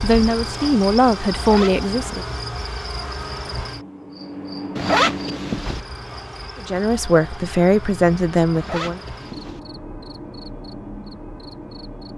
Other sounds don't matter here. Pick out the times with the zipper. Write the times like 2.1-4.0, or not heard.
1.4-2.4, 4.8-5.8, 8.6-9.6.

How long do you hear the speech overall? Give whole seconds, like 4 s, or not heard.
5 s.